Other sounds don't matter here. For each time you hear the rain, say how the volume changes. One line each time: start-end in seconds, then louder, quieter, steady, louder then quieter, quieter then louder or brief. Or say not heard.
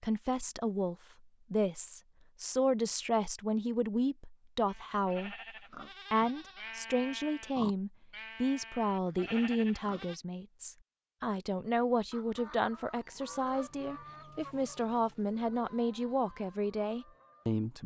not heard.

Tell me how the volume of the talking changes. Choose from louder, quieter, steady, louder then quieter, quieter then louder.
steady.